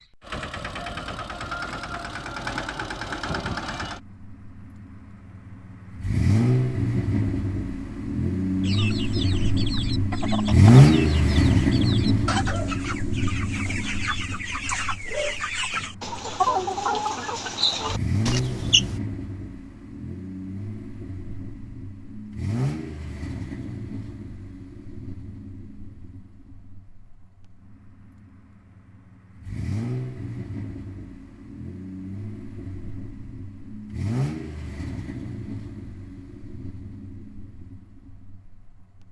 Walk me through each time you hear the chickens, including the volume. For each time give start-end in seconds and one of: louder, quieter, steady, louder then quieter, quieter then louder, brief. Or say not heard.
8.6-19.0 louder.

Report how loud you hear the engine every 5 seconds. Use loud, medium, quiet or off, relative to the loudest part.
quiet, medium, loud, quiet, quiet, quiet, quiet, quiet.